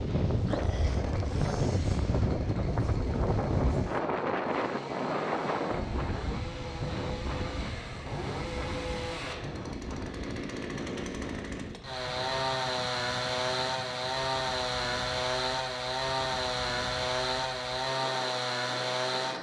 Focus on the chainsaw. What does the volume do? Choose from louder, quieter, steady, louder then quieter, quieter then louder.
louder.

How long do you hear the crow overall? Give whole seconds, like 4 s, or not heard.
not heard.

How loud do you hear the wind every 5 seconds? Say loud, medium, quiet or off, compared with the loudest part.
loud, medium, quiet, quiet.